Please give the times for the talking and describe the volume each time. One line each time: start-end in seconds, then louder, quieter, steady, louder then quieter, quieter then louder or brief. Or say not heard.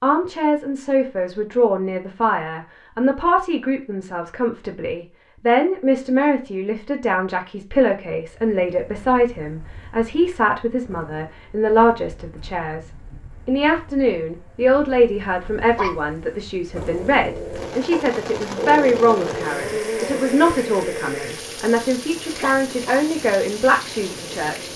0.0-24.7 steady.